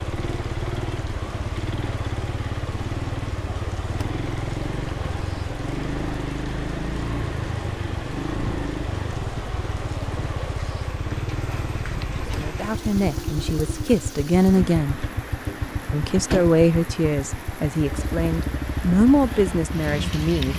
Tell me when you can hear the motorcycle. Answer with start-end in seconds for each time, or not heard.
0.0-20.5.